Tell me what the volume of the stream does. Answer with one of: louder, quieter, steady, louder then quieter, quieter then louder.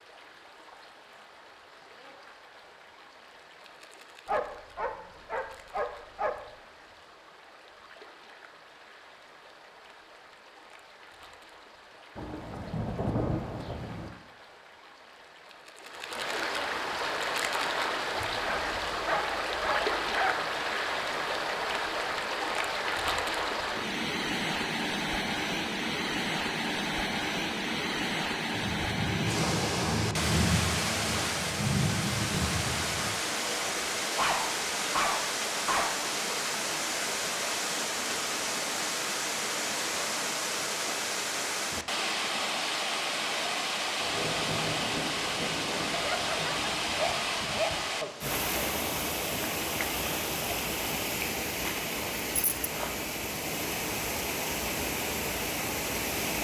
louder.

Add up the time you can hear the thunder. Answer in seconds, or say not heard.
10 s.